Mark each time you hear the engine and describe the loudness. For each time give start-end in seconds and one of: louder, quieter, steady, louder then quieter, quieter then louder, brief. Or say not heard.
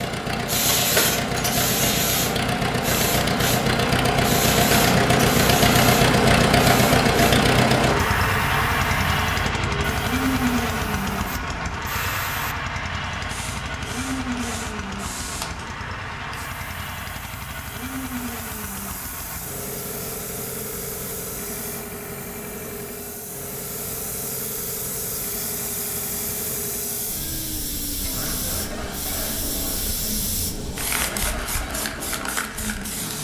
0.0-33.1 quieter.